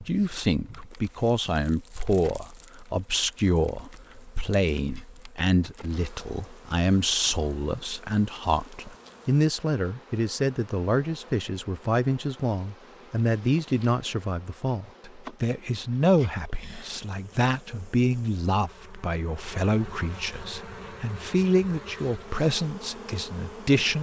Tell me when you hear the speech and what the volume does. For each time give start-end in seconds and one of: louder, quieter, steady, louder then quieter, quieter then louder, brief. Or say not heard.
0.0-23.9 steady.